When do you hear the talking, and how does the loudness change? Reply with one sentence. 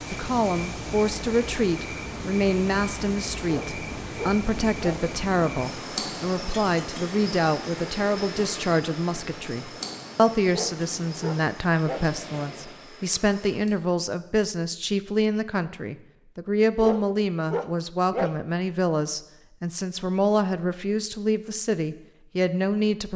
The talking can be heard from 0.1 to 23.1 s, at a steady volume.